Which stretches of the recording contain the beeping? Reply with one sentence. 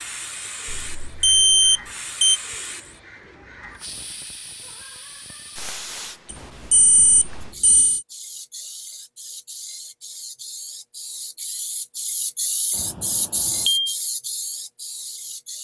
You can hear the beeping from 0.7 to 2.4 s, from 6.3 to 8.1 s and from 12.8 to 13.9 s.